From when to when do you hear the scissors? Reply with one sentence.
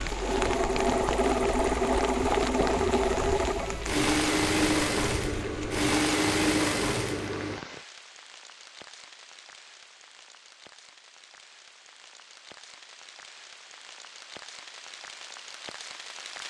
The scissors can't be heard in this clip.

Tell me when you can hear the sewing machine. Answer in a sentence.
You can hear the sewing machine from 0.0 to 7.7 s.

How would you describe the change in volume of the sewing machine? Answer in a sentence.
The loudness of the sewing machine stays about the same.